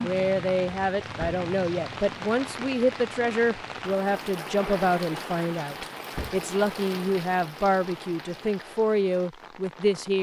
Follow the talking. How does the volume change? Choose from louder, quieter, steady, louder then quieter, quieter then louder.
steady.